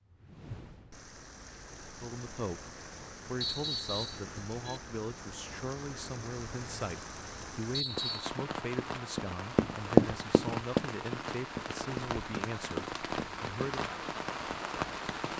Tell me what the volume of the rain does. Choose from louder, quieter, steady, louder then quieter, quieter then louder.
louder.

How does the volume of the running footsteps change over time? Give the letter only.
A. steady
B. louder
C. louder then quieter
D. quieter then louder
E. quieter
C.